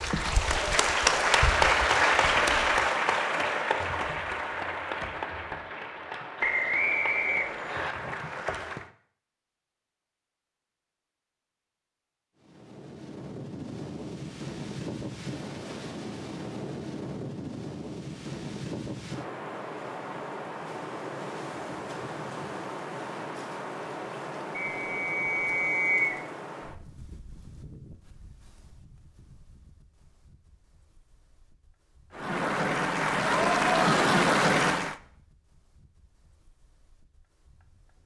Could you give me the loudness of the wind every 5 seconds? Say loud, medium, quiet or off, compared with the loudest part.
off, off, loud, loud, loud, medium, quiet, quiet.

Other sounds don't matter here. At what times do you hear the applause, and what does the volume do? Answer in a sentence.
You can hear the applause from 0.0 to 8.8 s, getting quieter; and briefly from 32.1 to 35.0 s.